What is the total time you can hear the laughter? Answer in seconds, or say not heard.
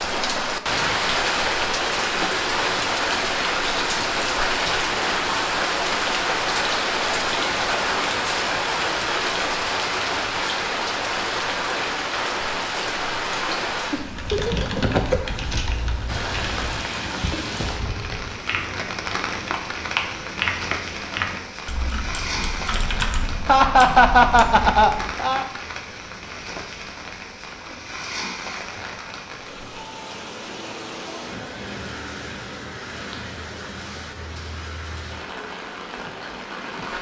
3 s.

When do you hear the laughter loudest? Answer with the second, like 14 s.
24 s.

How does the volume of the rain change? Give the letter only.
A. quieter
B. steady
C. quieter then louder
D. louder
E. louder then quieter
A.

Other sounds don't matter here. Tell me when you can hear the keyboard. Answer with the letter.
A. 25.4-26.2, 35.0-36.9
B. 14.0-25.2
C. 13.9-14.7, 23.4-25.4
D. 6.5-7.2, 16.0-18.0
B.